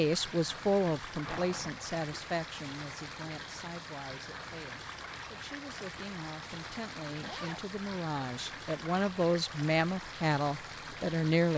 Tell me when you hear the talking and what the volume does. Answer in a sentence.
The talking can be heard from 0.0 to 11.5 s, getting quieter then louder.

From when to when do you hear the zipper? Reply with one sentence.
The zipper can be heard from 1.2 to 1.9 s and from 7.2 to 7.7 s.